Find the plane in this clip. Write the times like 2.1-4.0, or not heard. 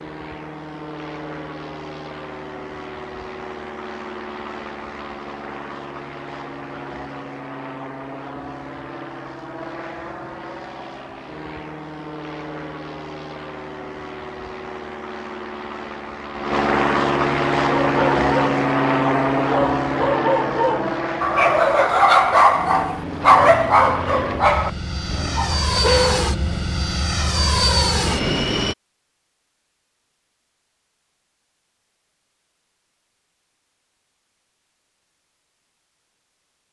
0.0-28.8.